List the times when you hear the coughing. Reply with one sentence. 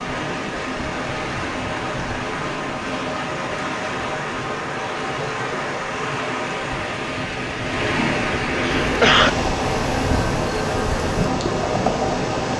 The coughing can be heard from 8.6 to 9.3 s.